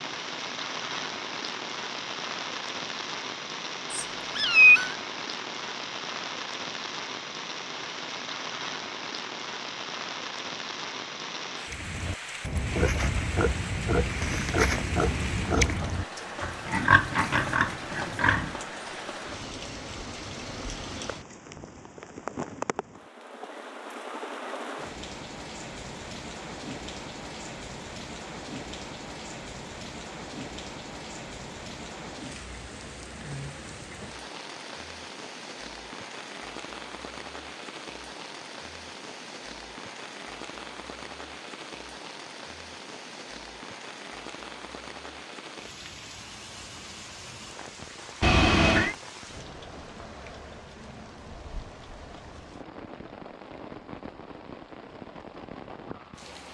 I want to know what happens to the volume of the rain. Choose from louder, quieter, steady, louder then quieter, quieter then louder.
quieter.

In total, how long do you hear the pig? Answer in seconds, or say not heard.
7 s.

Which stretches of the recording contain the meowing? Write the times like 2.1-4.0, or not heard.
3.9-5.0, 48.2-49.0.